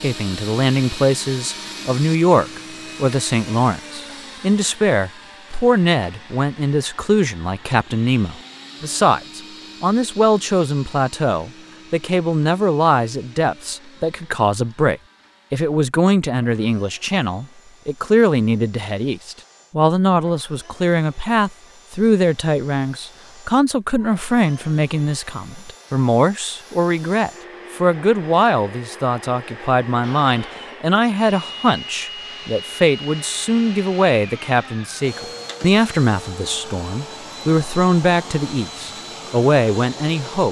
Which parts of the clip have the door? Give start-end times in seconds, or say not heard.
not heard.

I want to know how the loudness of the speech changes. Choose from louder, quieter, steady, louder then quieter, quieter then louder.
steady.